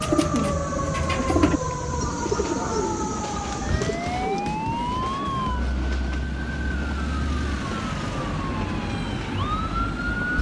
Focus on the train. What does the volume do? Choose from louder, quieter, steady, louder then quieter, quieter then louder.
steady.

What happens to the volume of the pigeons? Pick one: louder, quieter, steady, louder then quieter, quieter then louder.
louder then quieter.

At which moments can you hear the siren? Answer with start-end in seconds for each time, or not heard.
0.0-10.3.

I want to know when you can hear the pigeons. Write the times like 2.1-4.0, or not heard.
0.0-4.6.